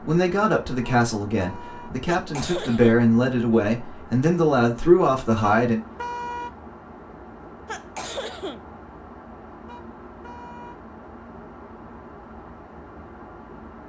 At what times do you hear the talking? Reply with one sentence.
You can hear the talking from 0.0 to 5.8 s.